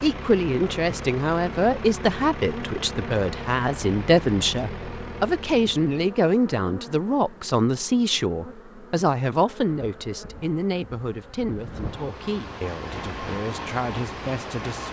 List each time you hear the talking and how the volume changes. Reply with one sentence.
The talking can be heard from 0.0 to 14.8 s, getting quieter.